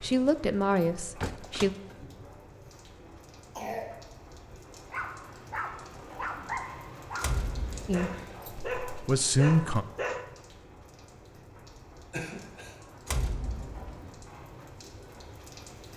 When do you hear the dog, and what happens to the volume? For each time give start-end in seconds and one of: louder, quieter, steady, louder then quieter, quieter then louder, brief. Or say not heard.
4.9-10.2 louder.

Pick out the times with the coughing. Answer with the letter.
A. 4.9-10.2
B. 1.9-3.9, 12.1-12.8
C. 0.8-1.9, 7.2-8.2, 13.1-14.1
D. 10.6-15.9
B.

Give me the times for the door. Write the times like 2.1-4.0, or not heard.
0.8-1.9, 7.2-8.2, 13.1-14.1.